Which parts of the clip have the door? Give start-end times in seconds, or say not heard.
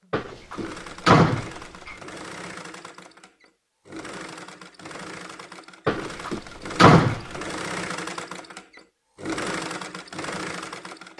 0.1-1.9, 5.8-7.2.